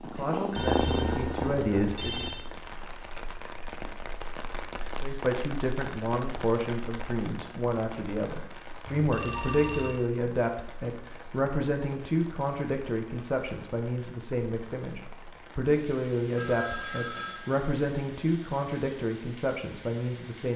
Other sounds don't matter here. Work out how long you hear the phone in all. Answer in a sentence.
The phone can be heard for 4 seconds in total.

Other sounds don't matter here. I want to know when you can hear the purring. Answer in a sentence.
The purring can be heard from 0.0 to 2.4 s.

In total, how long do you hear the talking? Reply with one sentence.
You can hear the talking for 18 seconds altogether.